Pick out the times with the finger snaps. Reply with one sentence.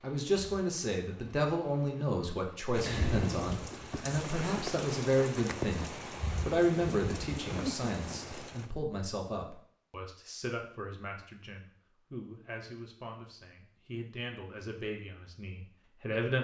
The finger snaps can be heard from 2.9 to 3.5 s.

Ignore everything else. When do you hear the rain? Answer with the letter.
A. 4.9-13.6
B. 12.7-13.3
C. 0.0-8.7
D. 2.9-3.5
C.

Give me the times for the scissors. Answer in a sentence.
The scissors can't be heard in this clip.